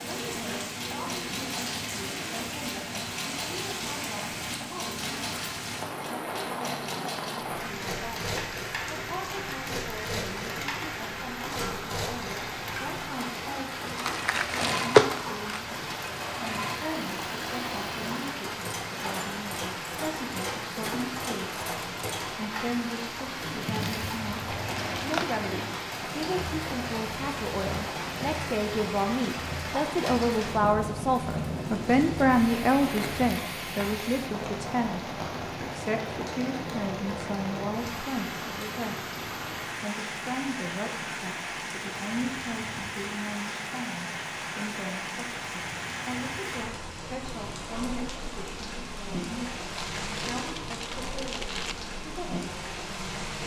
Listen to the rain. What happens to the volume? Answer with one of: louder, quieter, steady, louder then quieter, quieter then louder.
steady.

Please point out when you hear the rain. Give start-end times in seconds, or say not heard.
0.0-53.4.